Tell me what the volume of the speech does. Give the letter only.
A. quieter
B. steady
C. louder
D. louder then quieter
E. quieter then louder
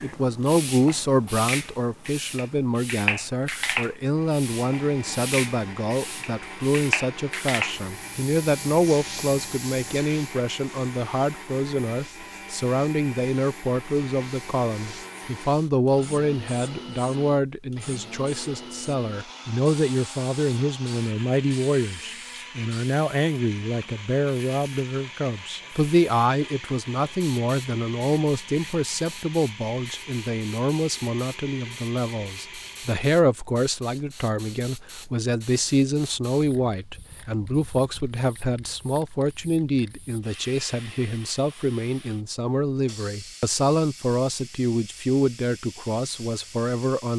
B.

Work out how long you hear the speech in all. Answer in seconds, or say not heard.
47 s.